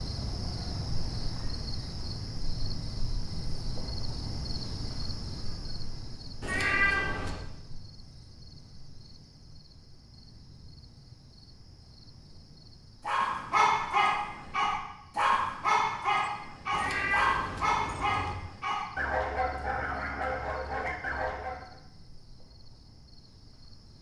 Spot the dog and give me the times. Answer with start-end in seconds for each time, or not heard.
13.1-21.6.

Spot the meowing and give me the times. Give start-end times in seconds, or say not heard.
6.4-7.4, 16.7-18.4.